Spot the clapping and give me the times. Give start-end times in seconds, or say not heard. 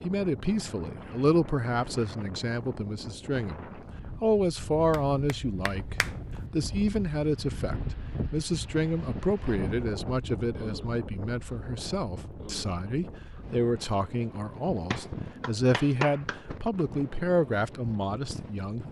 4.9-6.1, 14.9-16.4.